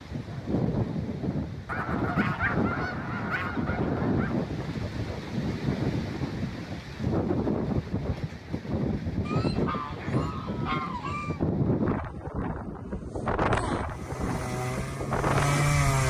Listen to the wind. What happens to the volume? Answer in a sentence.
The loudness of the wind stays about the same.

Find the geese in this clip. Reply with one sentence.
You can hear the geese from 1.6 to 4.3 s and from 9.2 to 11.4 s.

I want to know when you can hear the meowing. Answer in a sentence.
You can't hear the meowing here.